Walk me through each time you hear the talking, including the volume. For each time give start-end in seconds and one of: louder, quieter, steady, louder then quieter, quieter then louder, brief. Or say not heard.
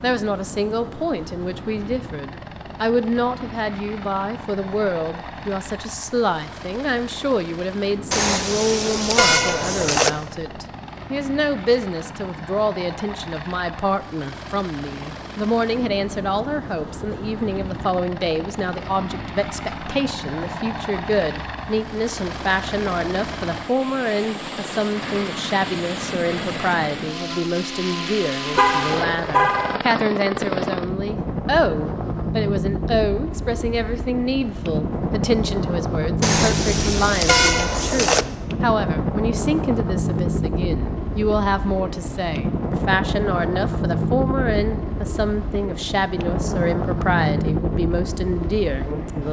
0.0-49.2 steady.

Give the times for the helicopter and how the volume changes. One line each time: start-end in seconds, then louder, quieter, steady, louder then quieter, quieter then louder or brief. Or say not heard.
0.0-49.2 louder.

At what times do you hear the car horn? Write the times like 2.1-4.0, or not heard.
8.1-10.1, 28.6-29.8, 36.2-38.2.